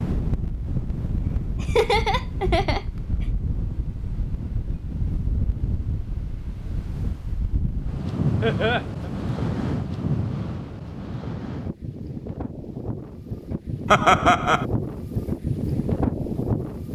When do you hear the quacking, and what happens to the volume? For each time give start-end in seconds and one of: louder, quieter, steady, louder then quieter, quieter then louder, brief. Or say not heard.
not heard.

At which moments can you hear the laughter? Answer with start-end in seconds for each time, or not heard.
1.6-2.9, 8.4-9.1, 13.9-14.7.